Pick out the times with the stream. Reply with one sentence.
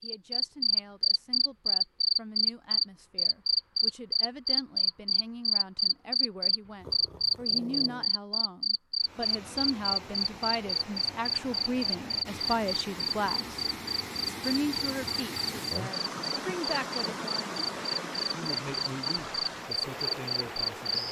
You can hear the stream from 9.0 to 21.0 s.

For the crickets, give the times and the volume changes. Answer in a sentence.
The crickets can be heard from 0.0 to 21.0 s, getting quieter.